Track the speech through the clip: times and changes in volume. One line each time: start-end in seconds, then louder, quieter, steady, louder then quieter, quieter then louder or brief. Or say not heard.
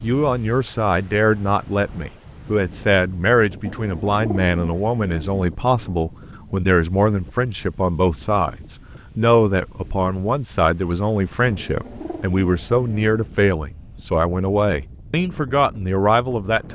0.0-16.7 steady.